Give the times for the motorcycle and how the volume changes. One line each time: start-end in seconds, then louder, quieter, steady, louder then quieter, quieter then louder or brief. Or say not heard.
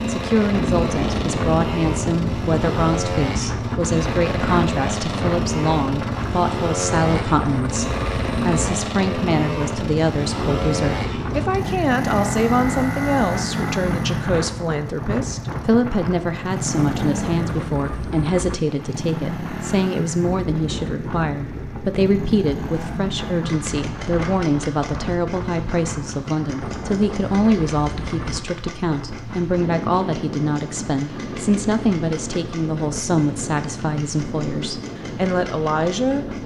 0.0-36.4 quieter.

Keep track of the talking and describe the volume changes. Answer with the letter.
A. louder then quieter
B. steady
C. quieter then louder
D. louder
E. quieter
B.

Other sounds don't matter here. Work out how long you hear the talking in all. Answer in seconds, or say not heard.
36 s.